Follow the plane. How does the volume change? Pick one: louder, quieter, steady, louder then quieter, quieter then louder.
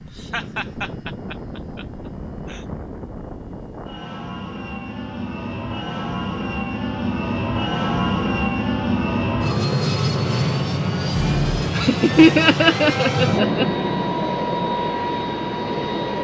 louder.